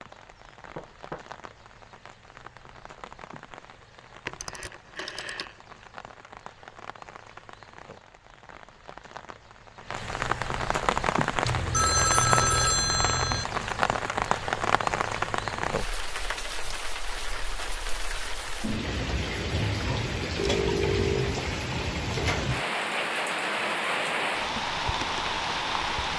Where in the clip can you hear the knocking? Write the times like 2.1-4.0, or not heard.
0.8-1.2.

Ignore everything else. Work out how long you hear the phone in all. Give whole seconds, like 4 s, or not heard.
4 s.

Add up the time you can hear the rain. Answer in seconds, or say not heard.
26 s.